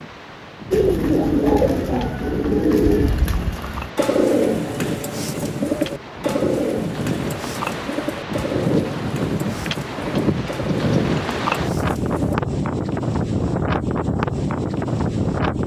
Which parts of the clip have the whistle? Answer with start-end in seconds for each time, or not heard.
not heard.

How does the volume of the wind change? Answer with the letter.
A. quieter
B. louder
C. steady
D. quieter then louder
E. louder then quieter
B.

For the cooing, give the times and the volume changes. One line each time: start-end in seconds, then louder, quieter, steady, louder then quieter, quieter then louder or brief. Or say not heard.
0.7-12.3 quieter.